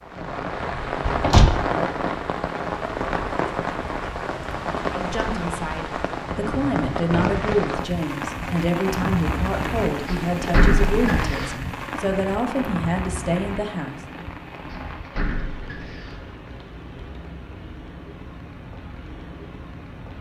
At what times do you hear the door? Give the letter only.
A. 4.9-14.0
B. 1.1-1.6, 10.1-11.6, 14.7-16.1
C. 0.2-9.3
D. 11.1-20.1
B.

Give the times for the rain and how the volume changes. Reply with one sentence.
The rain can be heard from 0.0 to 20.1 s, getting quieter.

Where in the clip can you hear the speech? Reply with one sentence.
The speech can be heard from 4.9 to 14.0 s.